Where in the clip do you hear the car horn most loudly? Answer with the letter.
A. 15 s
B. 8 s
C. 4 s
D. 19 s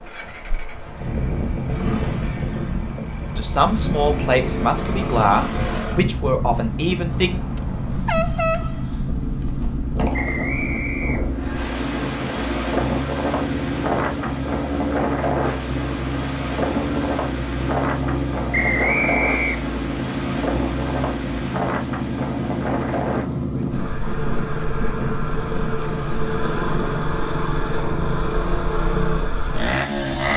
B.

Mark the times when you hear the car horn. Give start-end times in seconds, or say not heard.
7.1-9.1.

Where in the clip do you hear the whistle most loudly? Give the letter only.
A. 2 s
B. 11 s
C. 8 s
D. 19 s
D.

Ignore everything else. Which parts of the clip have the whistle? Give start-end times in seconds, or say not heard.
10.1-11.7, 18.5-19.6.